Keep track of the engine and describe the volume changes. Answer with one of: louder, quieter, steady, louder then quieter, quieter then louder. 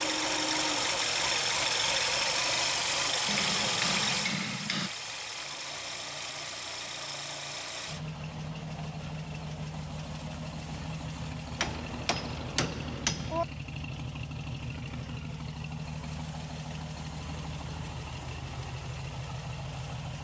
quieter.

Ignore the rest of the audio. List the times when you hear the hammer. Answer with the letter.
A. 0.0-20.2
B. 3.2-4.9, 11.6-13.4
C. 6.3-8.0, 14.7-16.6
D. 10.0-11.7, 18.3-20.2
B.